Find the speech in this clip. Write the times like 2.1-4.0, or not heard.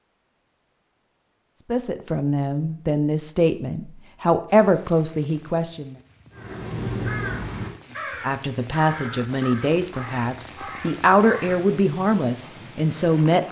1.7-6.0, 8.2-13.4.